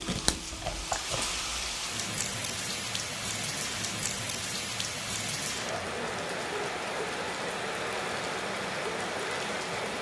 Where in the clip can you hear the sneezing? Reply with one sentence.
You can't hear the sneezing here.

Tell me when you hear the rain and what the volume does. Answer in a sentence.
You can hear the rain from 0.0 to 9.9 s, at a steady volume.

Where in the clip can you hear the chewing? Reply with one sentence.
You can hear the chewing from 0.0 to 1.4 s.